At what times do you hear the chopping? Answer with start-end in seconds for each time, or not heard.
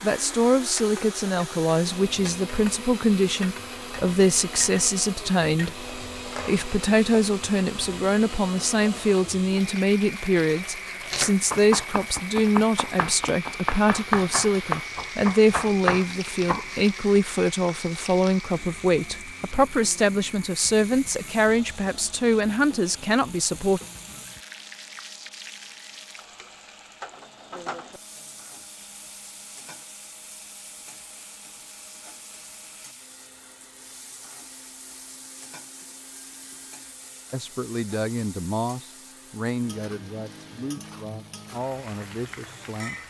10.6-16.7.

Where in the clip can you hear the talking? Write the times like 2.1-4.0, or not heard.
0.0-23.8, 37.3-43.0.